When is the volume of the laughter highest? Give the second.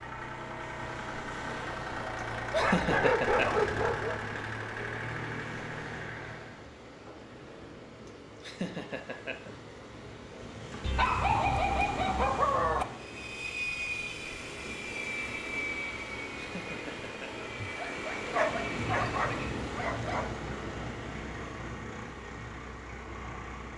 3 s.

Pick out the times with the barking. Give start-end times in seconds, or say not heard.
2.5-4.2, 10.8-12.8, 17.6-20.2.